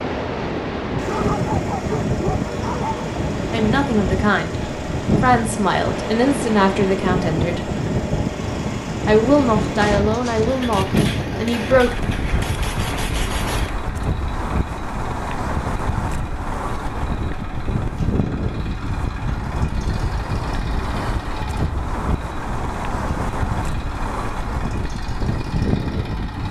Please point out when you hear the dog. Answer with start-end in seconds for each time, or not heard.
1.0-3.2.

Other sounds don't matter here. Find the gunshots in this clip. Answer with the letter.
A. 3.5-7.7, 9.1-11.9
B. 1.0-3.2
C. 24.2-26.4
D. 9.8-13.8
D.